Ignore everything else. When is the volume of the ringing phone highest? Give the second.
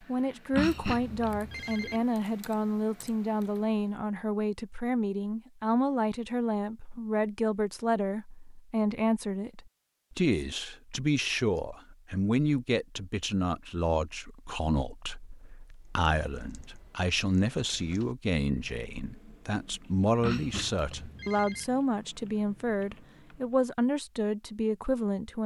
1 s.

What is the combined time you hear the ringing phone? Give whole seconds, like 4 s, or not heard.
3 s.